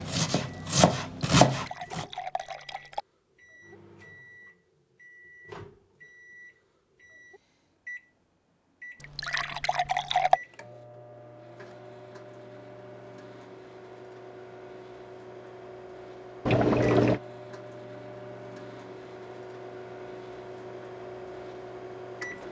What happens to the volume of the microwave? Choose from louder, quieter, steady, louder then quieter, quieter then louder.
louder.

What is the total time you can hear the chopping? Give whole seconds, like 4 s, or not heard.
2 s.